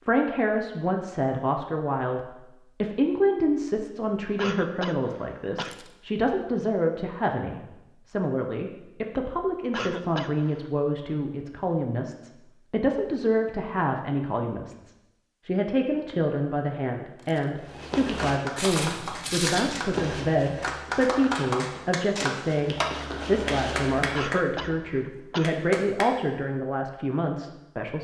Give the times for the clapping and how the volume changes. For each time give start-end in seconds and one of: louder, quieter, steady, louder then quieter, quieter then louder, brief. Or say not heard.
18.1-19.9 brief
20.6-26.1 quieter.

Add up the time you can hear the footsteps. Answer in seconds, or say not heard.
7 s.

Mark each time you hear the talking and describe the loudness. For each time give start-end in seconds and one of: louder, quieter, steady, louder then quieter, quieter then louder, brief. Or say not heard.
0.1-27.9 steady.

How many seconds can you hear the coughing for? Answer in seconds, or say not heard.
4 s.